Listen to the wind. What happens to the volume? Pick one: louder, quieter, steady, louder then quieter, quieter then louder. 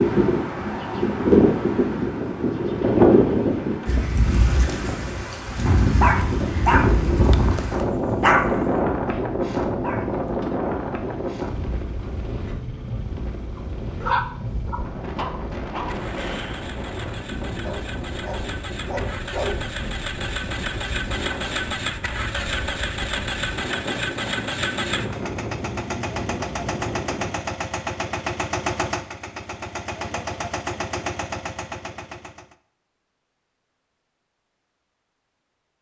quieter.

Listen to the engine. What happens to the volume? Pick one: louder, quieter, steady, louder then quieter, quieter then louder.
louder.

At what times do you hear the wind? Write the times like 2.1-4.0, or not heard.
0.0-27.4.